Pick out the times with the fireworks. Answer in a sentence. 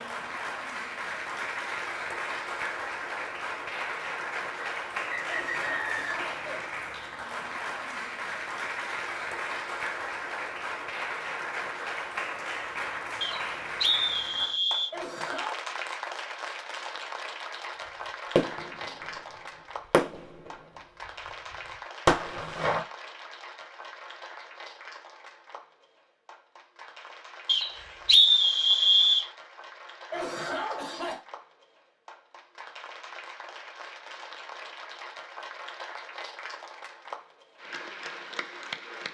You can hear the fireworks from 18.4 to 18.9 s, from 19.9 to 20.5 s and from 22.1 to 22.8 s.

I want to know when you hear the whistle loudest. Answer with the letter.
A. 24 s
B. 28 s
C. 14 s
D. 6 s
B.